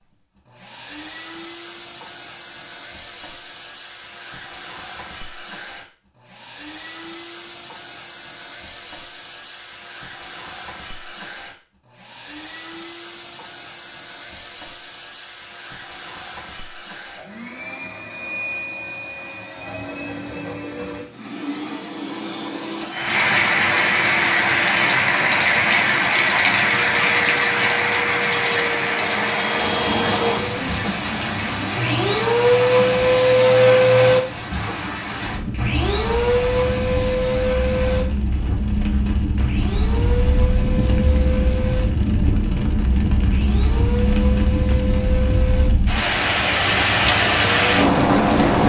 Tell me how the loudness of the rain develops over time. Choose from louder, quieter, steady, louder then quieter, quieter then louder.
quieter then louder.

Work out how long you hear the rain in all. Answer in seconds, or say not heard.
26 s.